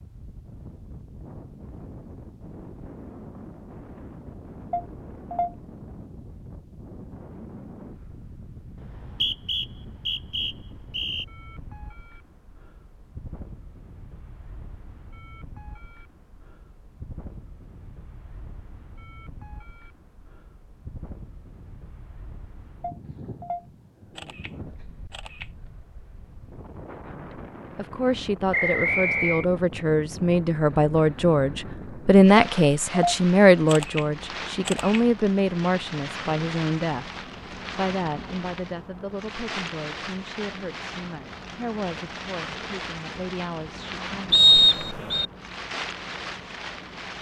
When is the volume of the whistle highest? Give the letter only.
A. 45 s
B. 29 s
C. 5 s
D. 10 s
A.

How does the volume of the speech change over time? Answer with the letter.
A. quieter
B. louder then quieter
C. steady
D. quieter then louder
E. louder
B.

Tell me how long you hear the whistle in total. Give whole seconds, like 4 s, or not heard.
4 s.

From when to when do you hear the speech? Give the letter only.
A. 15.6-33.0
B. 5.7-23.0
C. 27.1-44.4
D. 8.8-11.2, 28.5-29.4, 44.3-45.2
C.